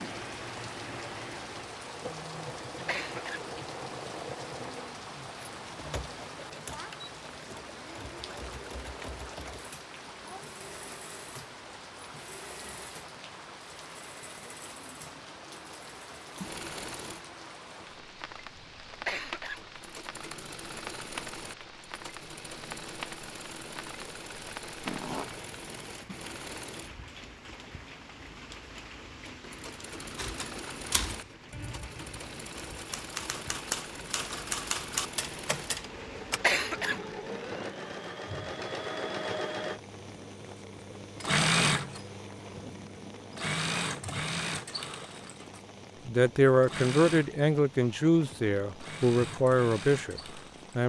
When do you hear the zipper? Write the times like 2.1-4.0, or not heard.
24.9-25.4.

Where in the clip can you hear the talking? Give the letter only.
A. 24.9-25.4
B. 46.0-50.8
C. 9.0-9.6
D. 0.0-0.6
B.